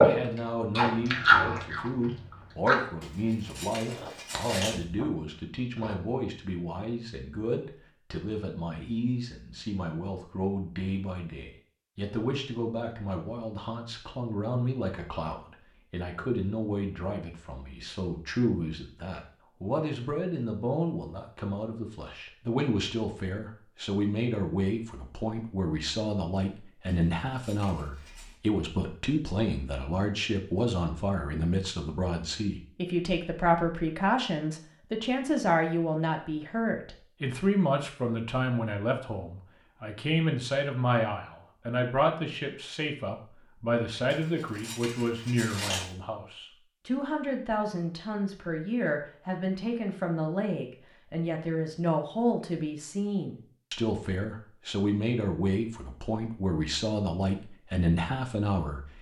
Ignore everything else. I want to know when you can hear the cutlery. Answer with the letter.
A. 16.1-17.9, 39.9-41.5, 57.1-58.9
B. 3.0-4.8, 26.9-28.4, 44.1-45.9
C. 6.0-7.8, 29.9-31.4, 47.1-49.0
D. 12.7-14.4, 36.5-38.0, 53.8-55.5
B.